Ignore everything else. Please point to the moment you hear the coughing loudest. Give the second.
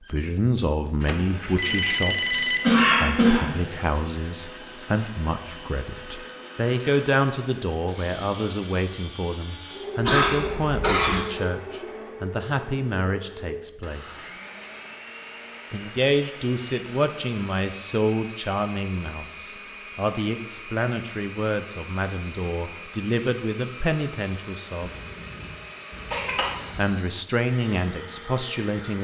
3 s.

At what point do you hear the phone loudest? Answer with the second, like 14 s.
2 s.